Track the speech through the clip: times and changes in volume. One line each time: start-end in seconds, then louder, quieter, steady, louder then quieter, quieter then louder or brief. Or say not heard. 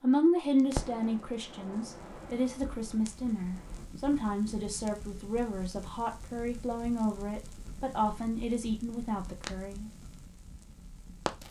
0.0-9.9 steady.